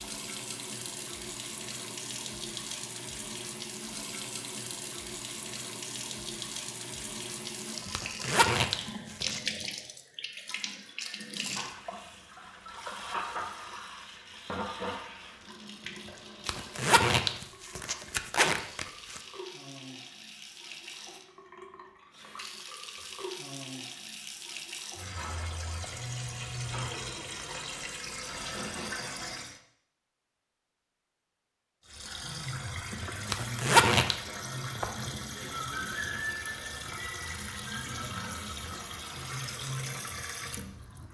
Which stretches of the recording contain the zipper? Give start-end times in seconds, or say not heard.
7.9-9.4, 16.4-19.2, 33.3-34.1.